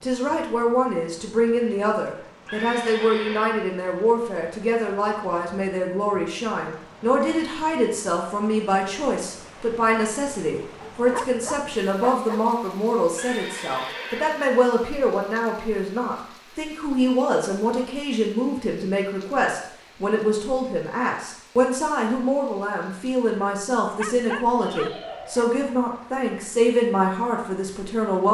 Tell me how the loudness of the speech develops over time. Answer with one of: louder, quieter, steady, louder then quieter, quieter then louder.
steady.